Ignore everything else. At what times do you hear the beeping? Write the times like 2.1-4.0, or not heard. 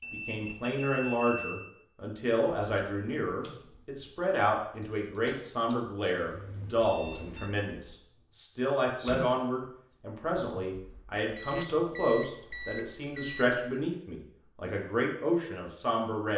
0.0-1.6, 6.2-7.5, 11.3-13.6.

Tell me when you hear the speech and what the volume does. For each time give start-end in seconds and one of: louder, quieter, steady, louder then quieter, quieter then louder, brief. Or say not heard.
0.1-16.3 steady.